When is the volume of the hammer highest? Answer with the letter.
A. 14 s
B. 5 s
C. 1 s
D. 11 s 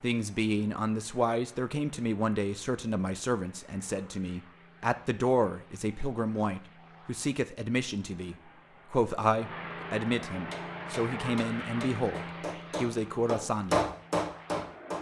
A.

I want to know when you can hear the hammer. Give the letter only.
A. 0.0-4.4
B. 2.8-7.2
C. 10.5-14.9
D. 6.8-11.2
C.